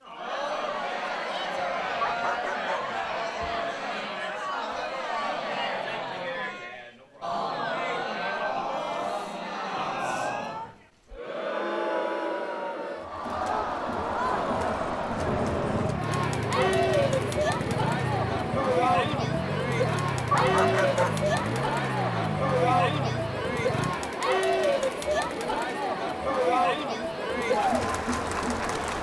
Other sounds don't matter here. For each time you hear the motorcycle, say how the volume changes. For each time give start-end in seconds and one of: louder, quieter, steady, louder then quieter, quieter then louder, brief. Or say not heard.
15.2-24.0 steady.